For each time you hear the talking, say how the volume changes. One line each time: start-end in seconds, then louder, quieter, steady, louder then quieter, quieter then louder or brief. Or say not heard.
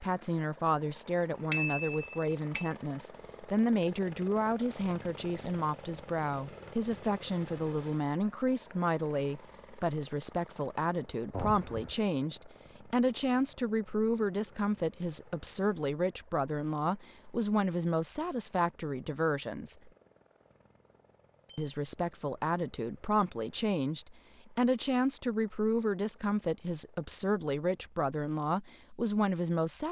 0.0-19.9 steady
21.6-29.8 steady.